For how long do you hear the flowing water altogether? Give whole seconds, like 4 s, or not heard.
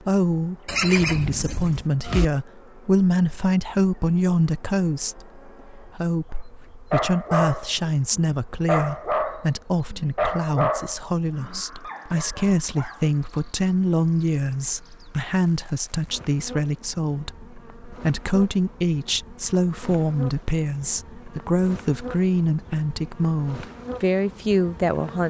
not heard.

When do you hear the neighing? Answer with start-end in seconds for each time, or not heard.
0.7-2.3.